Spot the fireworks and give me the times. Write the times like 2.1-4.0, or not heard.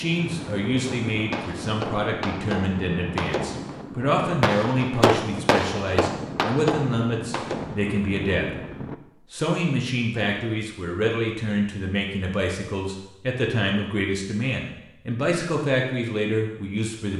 0.8-7.8.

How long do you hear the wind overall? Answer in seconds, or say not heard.
9 s.